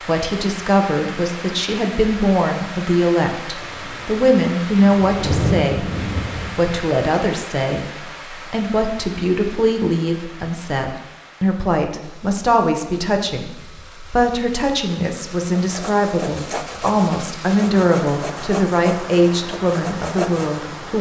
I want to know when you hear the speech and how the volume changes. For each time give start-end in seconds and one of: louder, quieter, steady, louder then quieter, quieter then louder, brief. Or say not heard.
0.1-20.9 steady.